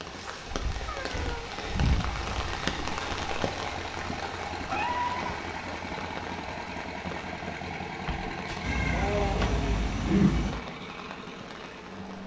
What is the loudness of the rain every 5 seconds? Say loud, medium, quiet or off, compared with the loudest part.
loud, medium, medium.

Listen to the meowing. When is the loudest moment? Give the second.
10 s.